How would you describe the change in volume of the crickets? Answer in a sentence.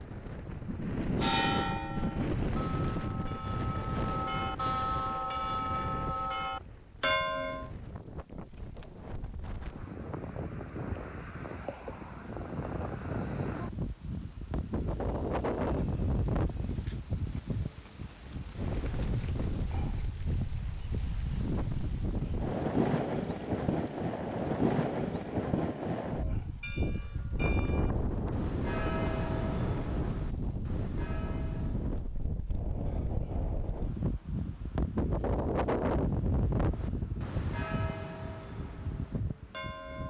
The loudness of the crickets goes up, then down.